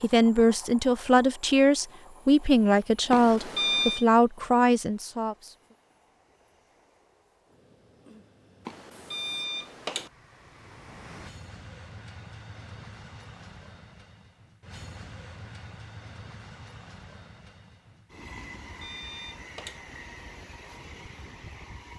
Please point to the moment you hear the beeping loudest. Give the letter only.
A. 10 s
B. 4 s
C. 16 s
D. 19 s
B.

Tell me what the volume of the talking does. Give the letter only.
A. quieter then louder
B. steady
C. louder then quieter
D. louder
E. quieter
B.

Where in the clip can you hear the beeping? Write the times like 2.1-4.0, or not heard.
3.1-4.0, 8.7-10.1, 18.4-19.8.